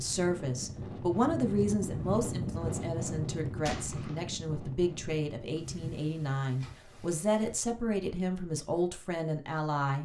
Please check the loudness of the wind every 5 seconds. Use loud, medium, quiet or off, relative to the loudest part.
loud, medium.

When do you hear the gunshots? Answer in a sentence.
You can hear the gunshots from 3.6 to 4.2 s.